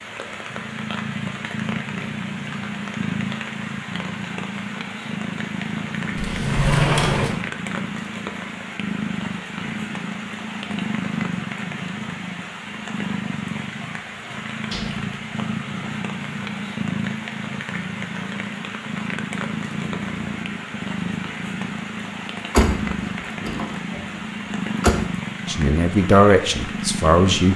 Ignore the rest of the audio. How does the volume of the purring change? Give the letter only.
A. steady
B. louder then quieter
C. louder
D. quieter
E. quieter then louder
A.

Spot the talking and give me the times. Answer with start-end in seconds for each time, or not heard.
25.4-27.5.